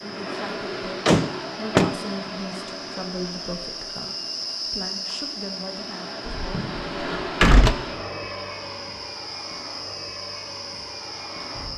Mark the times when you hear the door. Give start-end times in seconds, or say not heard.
1.1-1.9, 6.3-7.8.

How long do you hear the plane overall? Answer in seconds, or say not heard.
12 s.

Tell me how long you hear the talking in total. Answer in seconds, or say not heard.
7 s.